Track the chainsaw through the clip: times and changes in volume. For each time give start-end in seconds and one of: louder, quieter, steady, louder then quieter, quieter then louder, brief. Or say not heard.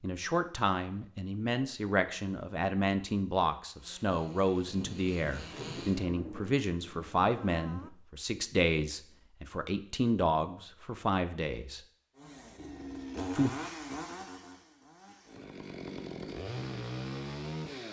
3.8-6.2 brief
12.2-17.8 quieter then louder.